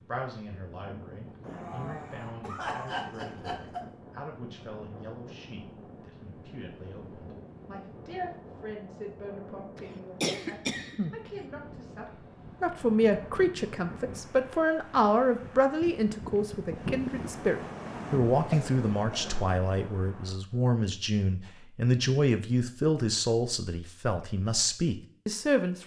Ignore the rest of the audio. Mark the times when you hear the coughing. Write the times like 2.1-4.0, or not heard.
1.4-3.9, 9.8-11.3, 18.4-19.4.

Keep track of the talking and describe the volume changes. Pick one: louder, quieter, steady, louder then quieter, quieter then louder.
louder.